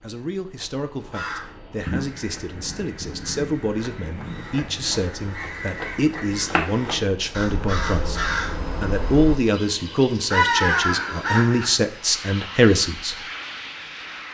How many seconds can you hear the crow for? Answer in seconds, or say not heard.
11 s.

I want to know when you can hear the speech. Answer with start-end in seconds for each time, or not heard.
0.0-13.2.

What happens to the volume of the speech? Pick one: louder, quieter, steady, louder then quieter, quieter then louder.
louder.